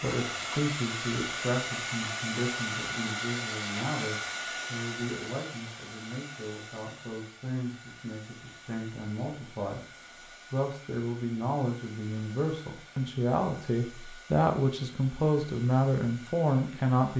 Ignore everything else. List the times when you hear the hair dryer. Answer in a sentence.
You can hear the hair dryer from 0.0 to 17.1 s.